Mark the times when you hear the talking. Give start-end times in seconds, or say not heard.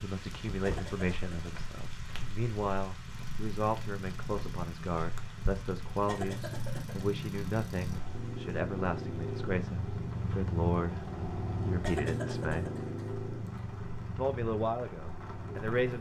0.0-12.7, 14.2-15.9.